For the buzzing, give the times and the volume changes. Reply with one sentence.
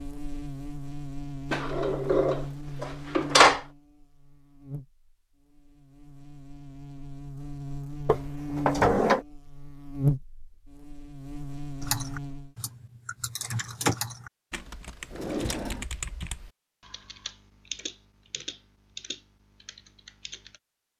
The buzzing can be heard from 0.0 to 12.6 s, getting quieter then louder.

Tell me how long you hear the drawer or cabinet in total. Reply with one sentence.
You can hear the drawer or cabinet for 4 seconds altogether.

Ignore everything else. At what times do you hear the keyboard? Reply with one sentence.
You can hear the keyboard from 11.8 to 20.6 s.